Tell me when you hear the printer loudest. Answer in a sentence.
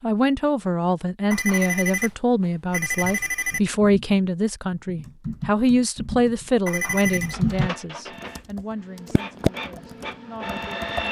The loudest moment of the printer is at 11 seconds.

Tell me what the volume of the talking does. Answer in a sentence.
The loudness of the talking goes down.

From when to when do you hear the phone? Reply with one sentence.
The phone can be heard from 1.3 to 3.6 s and from 6.7 to 7.3 s.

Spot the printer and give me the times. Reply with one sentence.
You can hear the printer from 7.2 to 11.0 s.